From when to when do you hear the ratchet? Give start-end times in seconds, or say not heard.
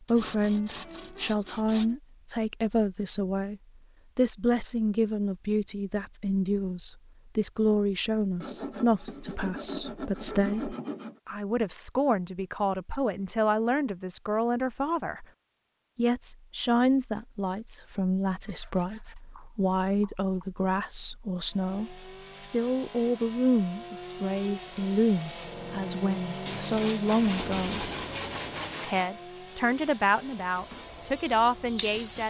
not heard.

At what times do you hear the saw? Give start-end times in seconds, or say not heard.
0.1-1.9, 8.4-11.2, 18.4-20.4, 26.4-29.1.